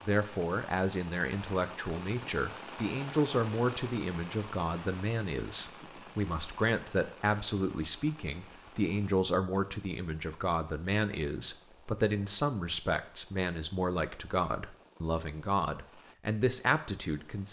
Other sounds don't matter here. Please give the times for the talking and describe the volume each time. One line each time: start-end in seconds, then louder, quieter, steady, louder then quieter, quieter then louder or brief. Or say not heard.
0.1-17.4 steady.